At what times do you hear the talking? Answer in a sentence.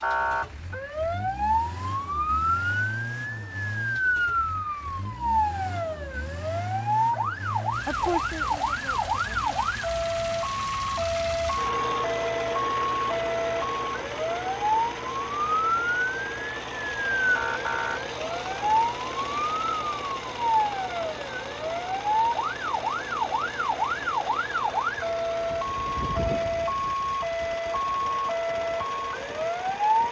You can hear the talking from 7.8 to 9.5 s.